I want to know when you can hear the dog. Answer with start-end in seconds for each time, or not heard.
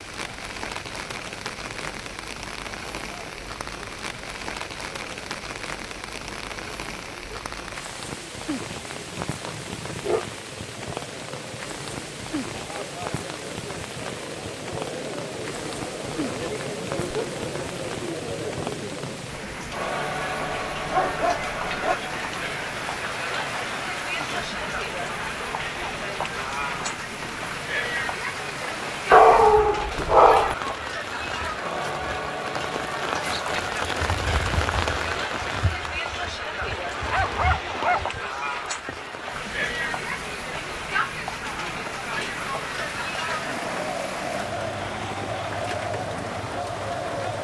8.9-10.2, 20.4-21.9, 29.1-30.6, 36.7-38.1.